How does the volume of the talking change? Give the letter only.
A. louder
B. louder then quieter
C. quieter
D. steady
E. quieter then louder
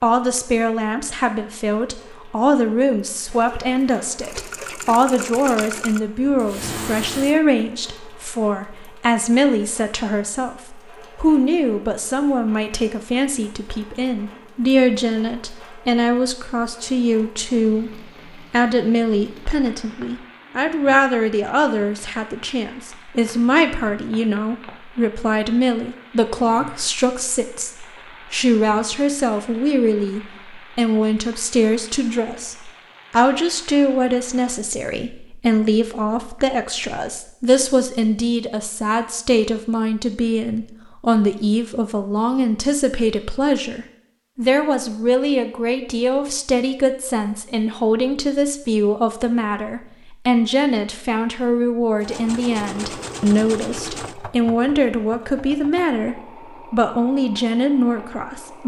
D.